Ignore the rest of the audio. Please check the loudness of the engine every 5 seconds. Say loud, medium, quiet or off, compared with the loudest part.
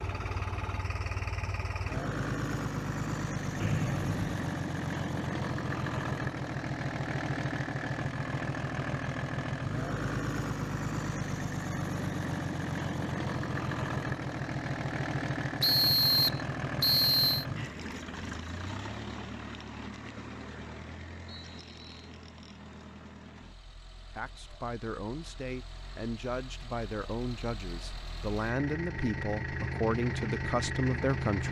loud, loud, loud, loud, quiet, medium, loud.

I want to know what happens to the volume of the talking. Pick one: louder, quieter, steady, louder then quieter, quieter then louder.
louder.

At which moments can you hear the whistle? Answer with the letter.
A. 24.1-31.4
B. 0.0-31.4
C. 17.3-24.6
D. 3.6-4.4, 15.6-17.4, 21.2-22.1
D.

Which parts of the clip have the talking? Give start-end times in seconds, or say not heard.
24.1-31.4.